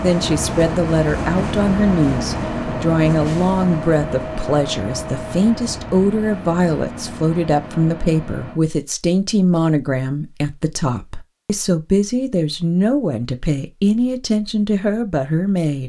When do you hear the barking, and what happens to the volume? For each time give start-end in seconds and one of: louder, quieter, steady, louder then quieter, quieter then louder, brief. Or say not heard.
not heard.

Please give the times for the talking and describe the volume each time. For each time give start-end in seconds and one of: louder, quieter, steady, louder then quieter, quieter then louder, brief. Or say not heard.
0.0-15.8 steady.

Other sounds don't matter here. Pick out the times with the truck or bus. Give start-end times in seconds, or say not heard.
0.0-8.6.